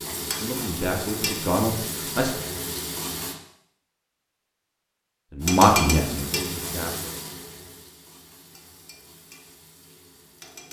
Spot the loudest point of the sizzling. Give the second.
6 s.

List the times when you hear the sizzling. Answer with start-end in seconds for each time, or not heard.
0.0-3.4, 5.4-10.6.